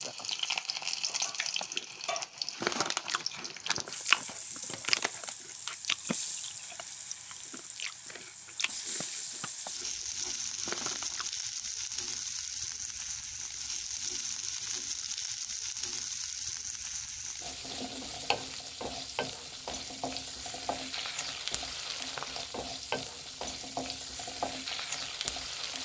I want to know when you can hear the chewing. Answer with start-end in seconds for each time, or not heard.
1.6-11.3.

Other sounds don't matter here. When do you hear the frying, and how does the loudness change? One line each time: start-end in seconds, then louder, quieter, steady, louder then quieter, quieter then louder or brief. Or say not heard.
0.0-25.8 steady.